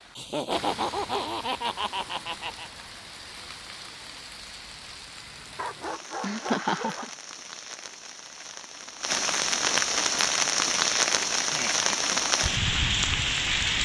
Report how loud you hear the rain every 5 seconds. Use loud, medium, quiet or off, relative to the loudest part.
quiet, medium, loud.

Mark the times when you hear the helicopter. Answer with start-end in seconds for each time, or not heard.
not heard.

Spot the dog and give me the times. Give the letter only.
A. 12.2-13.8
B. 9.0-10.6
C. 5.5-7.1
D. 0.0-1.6
C.